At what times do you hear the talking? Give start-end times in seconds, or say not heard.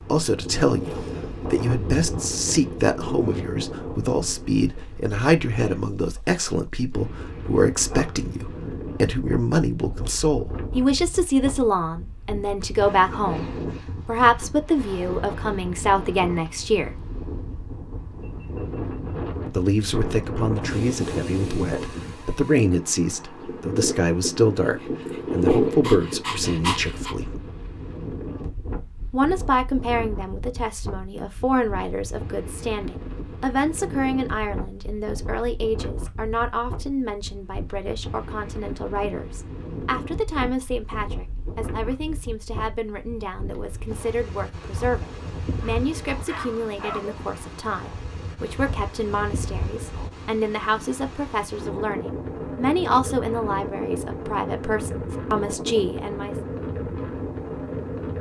0.1-17.1, 19.4-27.4, 29.1-56.4.